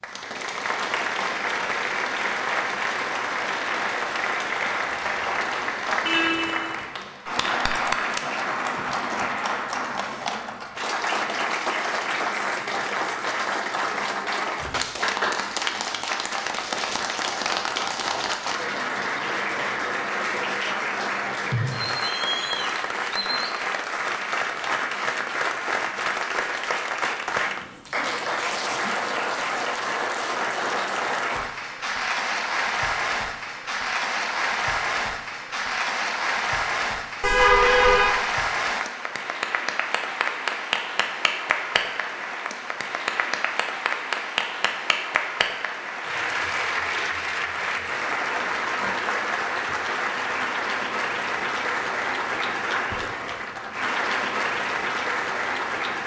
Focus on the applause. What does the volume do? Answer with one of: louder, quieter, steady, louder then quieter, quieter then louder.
steady.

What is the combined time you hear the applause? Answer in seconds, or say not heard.
56 s.